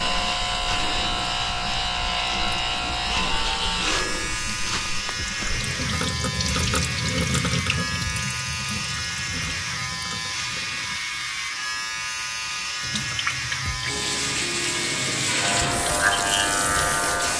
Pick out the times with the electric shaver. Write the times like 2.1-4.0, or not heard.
0.0-17.3.